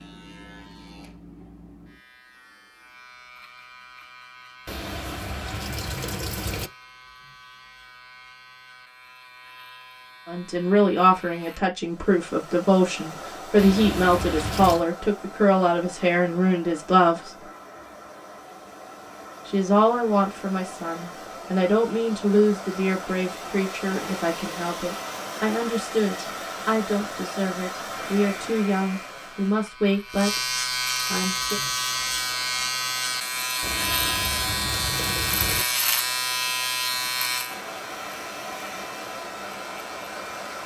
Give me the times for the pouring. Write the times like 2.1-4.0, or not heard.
4.7-6.7, 13.6-14.8, 33.6-35.6.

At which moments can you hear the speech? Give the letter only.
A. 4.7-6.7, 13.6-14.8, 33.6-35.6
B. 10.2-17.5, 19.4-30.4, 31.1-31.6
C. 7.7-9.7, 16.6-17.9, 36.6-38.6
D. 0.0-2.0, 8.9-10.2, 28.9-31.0
B.